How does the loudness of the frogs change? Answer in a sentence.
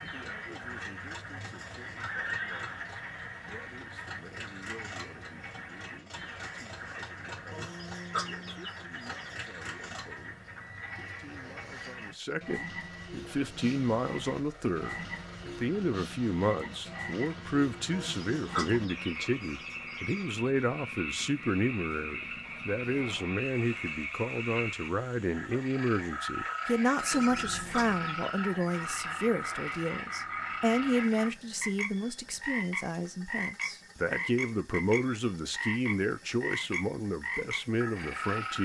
The loudness of the frogs goes up.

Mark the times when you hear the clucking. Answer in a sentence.
You can hear the clucking from 7.5 to 9.3 s, from 17.9 to 20.2 s and from 27.1 to 28.8 s.